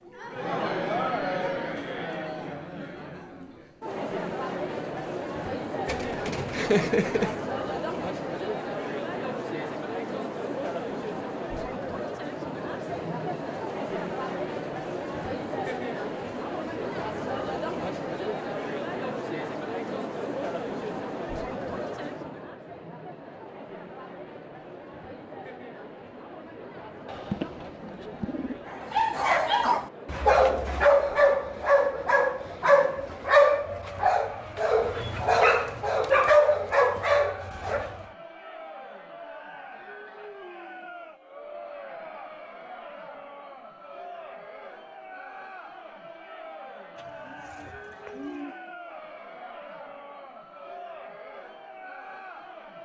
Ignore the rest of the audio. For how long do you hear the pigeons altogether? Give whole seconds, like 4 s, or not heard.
5 s.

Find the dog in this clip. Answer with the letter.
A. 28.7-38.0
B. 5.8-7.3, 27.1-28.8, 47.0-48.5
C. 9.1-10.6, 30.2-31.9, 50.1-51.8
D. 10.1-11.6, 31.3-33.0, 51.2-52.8
A.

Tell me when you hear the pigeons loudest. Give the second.
7 s.